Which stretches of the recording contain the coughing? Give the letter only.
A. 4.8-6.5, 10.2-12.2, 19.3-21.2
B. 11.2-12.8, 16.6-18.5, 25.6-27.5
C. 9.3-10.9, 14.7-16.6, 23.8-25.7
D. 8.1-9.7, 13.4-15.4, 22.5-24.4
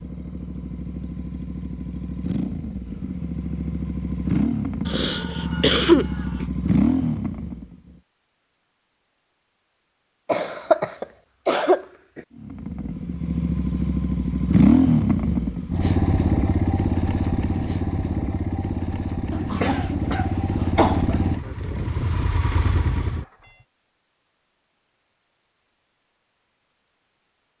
A.